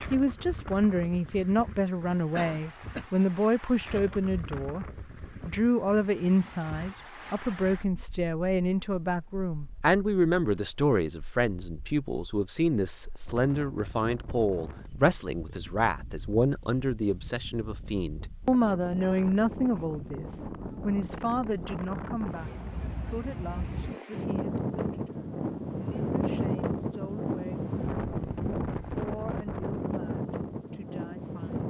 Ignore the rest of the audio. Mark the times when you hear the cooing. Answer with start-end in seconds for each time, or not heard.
not heard.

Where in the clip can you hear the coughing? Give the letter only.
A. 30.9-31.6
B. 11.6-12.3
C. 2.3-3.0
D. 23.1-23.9
C.